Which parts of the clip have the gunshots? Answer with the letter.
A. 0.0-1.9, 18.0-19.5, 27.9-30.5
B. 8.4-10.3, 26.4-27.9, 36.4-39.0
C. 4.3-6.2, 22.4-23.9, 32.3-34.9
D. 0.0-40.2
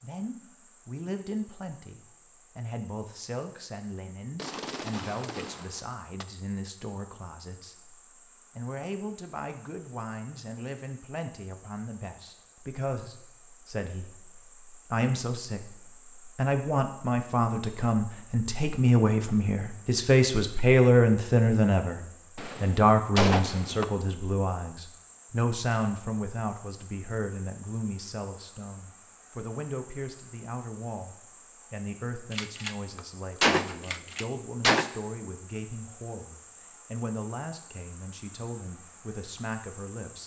C.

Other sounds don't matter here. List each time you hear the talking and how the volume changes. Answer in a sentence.
The talking can be heard from 0.0 to 40.2 s, getting louder then quieter.